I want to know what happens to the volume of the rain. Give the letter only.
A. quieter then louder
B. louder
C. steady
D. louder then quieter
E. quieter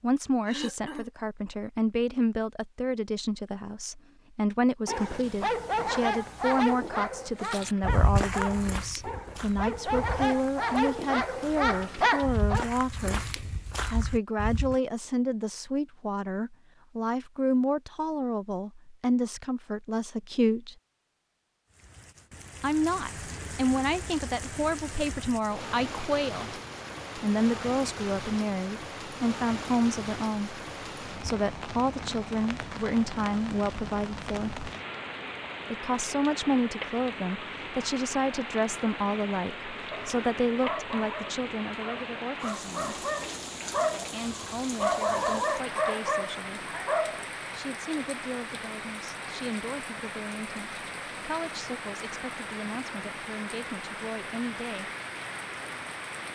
C.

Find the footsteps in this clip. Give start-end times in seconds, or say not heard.
7.5-14.8.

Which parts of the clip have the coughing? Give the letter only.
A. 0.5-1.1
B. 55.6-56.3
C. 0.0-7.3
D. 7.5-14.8
A.